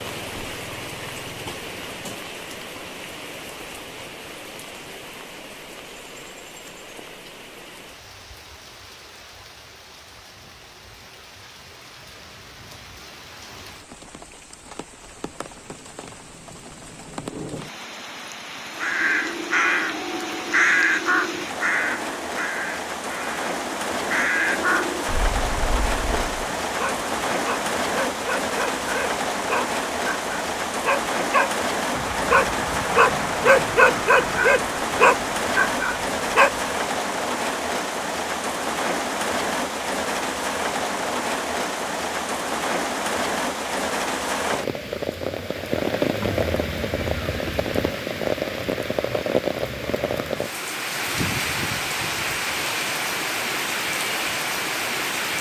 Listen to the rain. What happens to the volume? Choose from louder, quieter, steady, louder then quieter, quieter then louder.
louder.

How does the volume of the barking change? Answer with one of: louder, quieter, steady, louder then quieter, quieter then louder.
louder.